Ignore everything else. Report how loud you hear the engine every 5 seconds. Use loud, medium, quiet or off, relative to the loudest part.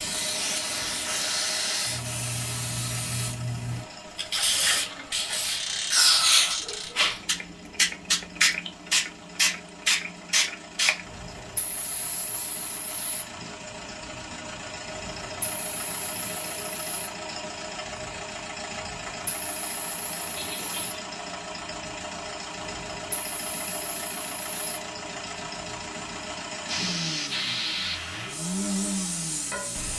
medium, quiet, medium, loud, loud, loud.